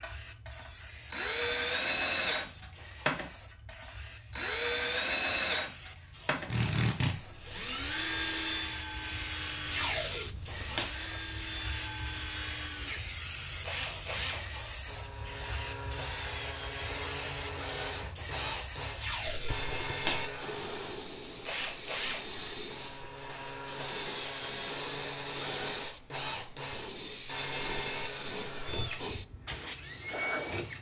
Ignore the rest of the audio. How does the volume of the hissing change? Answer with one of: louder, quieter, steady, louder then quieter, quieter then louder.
louder.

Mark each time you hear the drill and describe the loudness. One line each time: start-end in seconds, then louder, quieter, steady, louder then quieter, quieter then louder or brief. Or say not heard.
0.0-30.7 quieter.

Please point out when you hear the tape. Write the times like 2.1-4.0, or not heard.
9.7-10.8, 18.9-20.2.